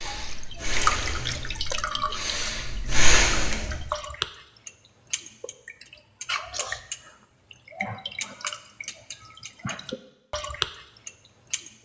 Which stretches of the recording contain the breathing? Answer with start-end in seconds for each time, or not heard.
0.0-3.9.